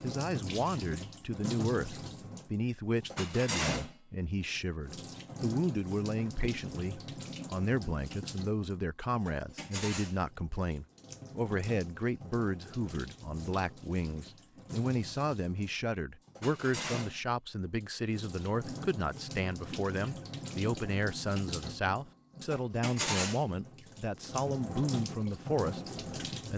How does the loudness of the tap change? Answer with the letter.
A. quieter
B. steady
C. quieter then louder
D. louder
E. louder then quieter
C.